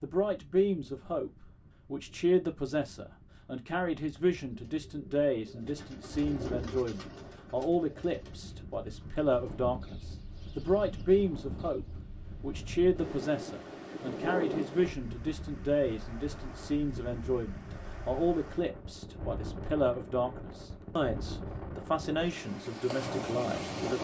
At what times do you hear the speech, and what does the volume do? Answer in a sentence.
The speech can be heard from 0.0 to 23.9 s, at a steady volume.